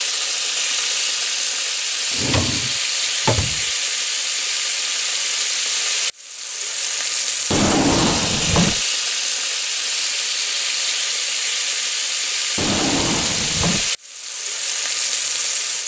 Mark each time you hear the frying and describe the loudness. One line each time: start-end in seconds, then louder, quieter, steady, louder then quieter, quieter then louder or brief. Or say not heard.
0.0-15.8 steady.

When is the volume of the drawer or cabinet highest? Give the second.
8 s.